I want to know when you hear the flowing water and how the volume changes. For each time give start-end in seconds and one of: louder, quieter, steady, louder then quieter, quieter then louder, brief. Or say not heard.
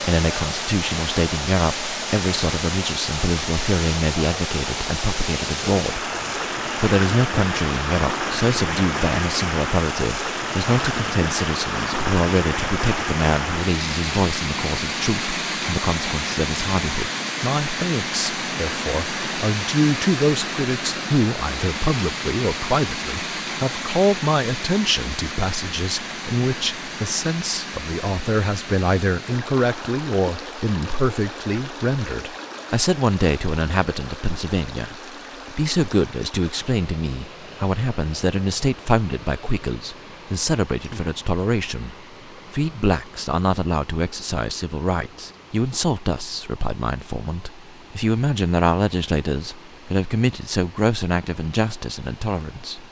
0.0-52.8 quieter.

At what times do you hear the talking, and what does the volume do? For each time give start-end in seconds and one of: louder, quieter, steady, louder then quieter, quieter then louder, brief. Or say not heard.
0.0-52.8 steady.